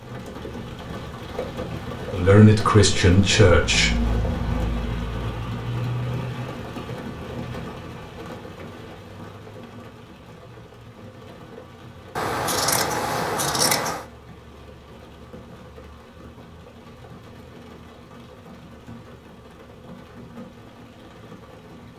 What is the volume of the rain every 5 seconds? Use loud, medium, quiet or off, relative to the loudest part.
loud, loud, quiet, quiet, quiet.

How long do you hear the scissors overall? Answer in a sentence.
You can hear the scissors for 2 seconds altogether.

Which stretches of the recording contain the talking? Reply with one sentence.
You can hear the talking from 2.1 to 4.0 s.